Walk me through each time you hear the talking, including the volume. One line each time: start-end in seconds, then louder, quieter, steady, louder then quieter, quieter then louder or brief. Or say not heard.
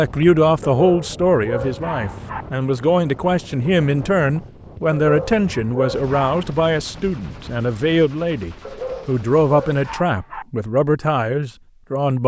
0.0-12.2 steady.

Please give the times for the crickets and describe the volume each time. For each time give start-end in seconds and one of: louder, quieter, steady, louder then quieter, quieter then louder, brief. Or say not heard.
not heard.